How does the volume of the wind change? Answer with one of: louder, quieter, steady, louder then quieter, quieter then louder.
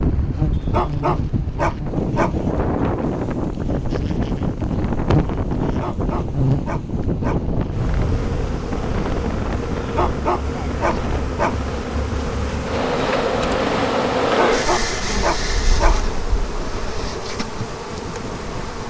quieter.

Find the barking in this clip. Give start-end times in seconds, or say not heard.
0.5-2.4, 5.6-7.4, 9.8-11.6, 14.2-15.9.